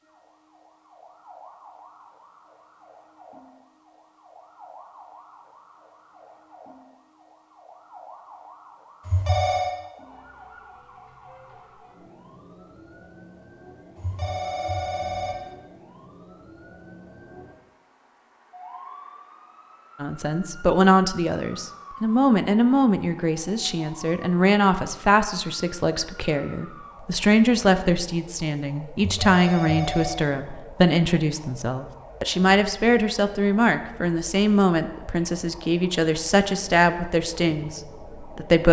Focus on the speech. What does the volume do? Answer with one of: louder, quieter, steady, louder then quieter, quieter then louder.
steady.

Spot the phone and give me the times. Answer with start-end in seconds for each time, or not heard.
9.1-9.8, 13.9-15.5, 28.9-30.2.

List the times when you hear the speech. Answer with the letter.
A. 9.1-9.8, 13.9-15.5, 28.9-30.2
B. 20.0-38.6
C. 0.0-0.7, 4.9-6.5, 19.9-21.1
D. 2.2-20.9
B.